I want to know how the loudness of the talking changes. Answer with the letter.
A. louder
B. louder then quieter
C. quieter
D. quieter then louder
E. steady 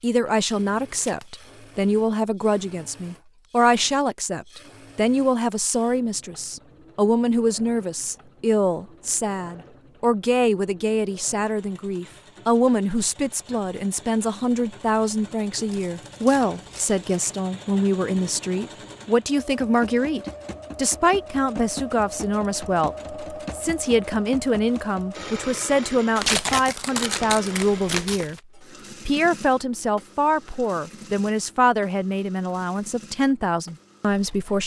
E.